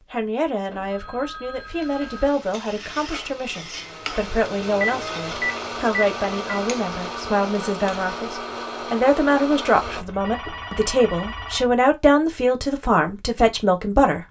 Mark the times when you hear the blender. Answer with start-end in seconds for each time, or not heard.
2.1-10.1.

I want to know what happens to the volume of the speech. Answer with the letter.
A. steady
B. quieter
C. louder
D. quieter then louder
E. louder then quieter
C.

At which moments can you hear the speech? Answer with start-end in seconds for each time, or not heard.
0.1-14.2.